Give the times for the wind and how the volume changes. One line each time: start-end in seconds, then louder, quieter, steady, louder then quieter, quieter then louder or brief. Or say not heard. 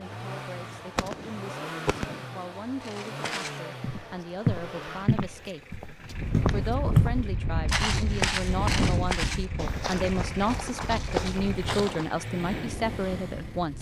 6.0-13.7 quieter.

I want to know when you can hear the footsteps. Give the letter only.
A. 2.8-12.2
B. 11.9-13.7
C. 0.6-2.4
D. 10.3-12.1
A.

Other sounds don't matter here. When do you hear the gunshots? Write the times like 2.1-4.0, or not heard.
0.6-2.4.